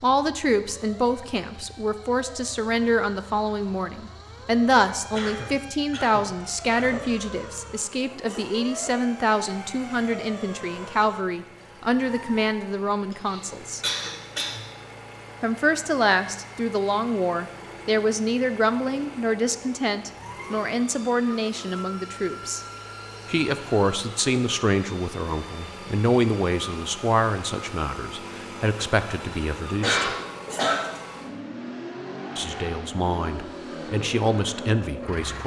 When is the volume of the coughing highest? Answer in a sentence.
The volume of the coughing peaks at 30 seconds.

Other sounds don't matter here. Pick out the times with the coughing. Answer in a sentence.
You can hear the coughing from 5.1 to 7.0 s, from 13.1 to 14.6 s and from 29.8 to 30.9 s.